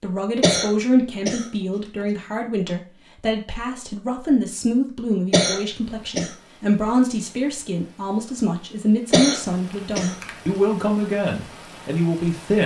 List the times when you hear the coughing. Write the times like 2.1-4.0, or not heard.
0.4-1.4, 5.3-6.3, 9.1-10.2.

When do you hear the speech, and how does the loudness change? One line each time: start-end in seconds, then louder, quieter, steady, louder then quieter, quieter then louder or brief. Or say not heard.
0.0-12.6 steady.